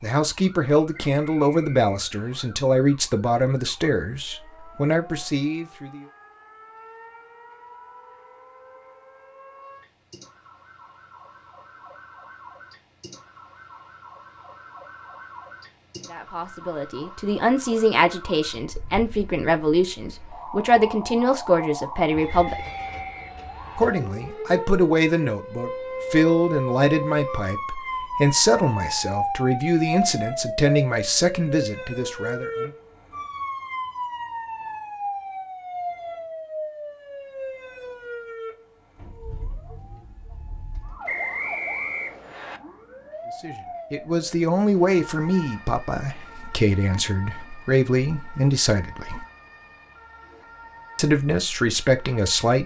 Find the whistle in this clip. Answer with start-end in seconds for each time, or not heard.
0.9-2.5, 22.2-23.8, 41.0-42.6.